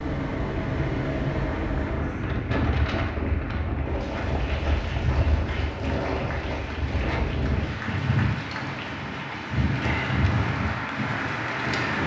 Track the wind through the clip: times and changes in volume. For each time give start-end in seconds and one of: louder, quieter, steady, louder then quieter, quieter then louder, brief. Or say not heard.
0.0-12.0 steady.